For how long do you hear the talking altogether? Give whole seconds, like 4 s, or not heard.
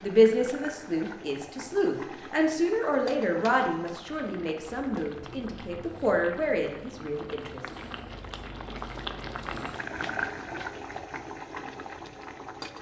8 s.